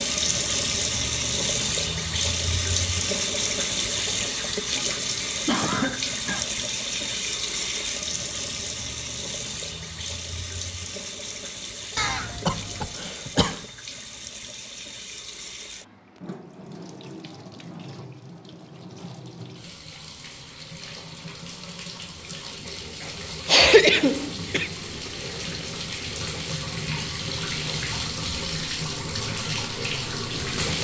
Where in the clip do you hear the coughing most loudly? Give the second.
24 s.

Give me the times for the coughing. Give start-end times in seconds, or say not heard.
5.5-6.5, 11.9-13.6, 23.4-24.7.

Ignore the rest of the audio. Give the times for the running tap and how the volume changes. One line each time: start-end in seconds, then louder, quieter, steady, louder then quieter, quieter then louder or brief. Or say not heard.
0.0-30.7 quieter then louder.